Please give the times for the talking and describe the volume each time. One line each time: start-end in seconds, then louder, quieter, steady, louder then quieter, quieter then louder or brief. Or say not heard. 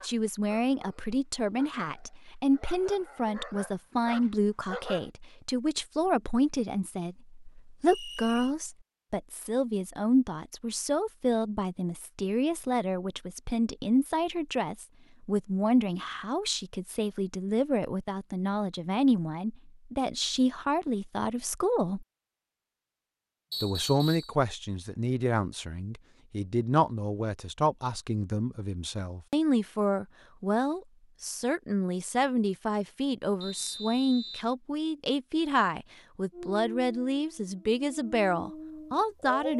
0.0-22.1 steady
23.6-39.5 steady.